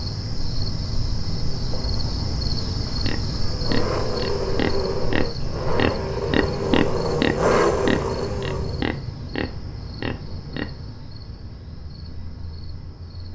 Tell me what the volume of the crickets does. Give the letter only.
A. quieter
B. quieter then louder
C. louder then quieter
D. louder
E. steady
A.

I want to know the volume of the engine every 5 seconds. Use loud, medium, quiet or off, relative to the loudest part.
loud, loud, off.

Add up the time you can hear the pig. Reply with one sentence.
The pig can be heard for 8 seconds in total.